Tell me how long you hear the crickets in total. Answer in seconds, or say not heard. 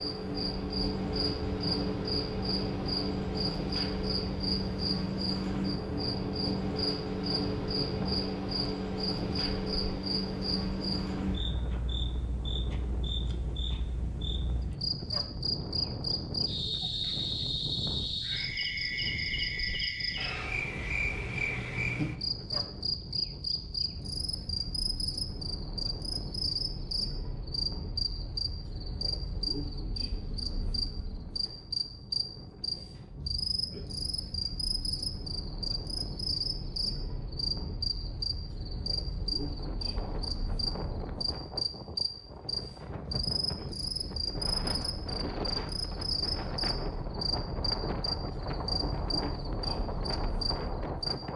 51 s.